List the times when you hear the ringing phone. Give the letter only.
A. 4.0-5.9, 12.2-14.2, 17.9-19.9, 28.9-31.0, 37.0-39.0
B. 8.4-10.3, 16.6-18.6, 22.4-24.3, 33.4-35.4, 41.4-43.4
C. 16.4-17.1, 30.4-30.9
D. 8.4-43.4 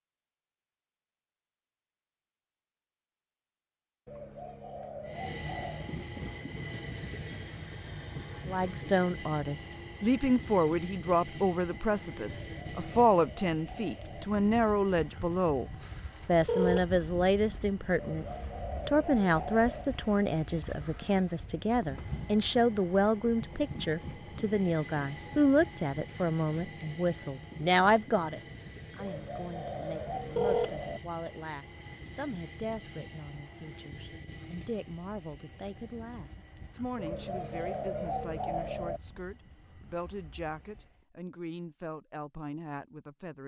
C.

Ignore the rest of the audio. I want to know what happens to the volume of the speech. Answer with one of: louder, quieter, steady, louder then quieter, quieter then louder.
quieter.